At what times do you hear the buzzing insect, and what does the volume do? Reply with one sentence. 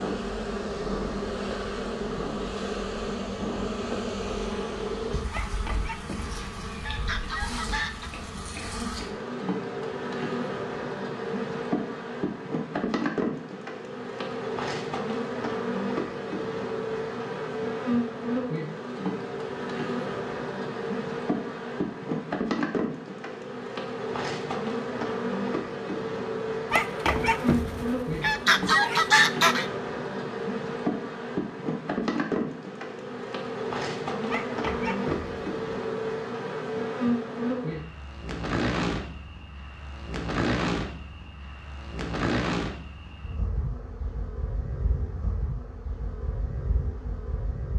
You can hear the buzzing insect from 0.0 to 47.7 s, at a steady volume.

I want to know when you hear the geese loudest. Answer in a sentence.
The volume of the geese peaks at 29 seconds.